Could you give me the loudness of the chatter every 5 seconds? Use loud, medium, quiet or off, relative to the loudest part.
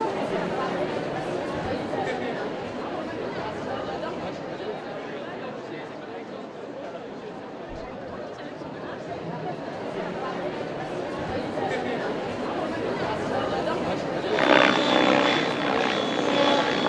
loud, medium, loud, loud.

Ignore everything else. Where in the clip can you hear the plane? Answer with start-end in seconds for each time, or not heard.
14.2-16.8.